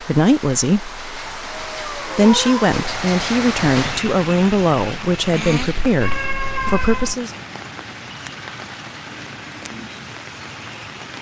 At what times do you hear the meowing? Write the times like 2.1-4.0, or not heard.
1.2-2.8, 6.0-7.2.